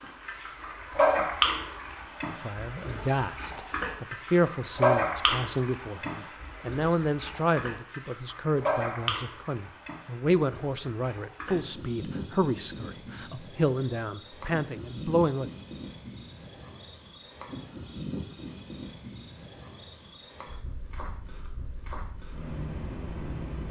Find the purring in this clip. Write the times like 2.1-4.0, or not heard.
not heard.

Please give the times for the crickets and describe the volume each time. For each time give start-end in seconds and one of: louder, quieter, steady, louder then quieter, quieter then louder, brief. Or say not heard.
0.0-23.6 quieter.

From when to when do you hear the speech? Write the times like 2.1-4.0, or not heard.
2.3-15.5.